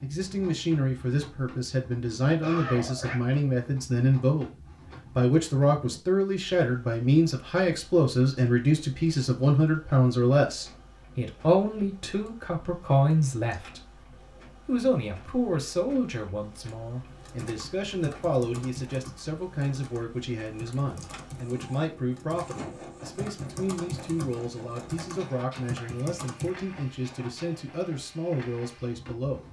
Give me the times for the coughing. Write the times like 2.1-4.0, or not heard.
2.4-3.2.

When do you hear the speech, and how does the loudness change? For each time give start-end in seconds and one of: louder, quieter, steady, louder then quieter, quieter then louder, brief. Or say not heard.
0.0-29.4 quieter.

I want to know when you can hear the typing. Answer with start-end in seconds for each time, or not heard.
17.1-26.5.